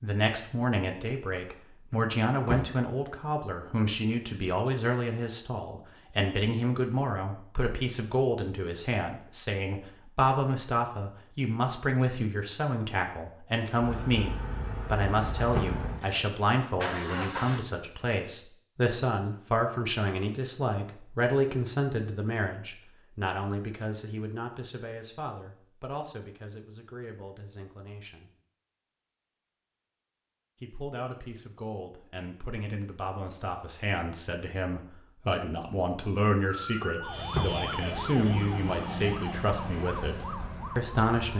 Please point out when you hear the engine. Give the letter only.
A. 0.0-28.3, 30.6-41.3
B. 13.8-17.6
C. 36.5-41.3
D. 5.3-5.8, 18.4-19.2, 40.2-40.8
B.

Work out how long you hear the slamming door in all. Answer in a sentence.
The slamming door can be heard for 2 seconds in total.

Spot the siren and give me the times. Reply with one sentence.
You can hear the siren from 36.5 to 41.3 s.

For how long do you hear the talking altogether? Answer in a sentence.
You can hear the talking for 39 seconds altogether.